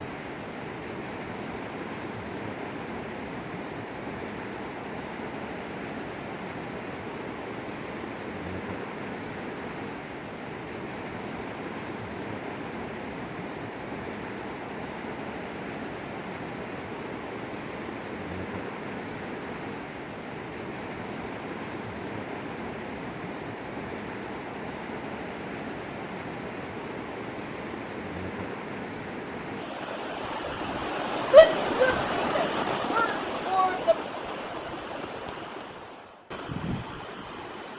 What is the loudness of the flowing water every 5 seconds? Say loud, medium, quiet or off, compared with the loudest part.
medium, medium, medium, medium, medium, medium, loud, medium.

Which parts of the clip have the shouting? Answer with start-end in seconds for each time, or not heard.
31.3-34.0.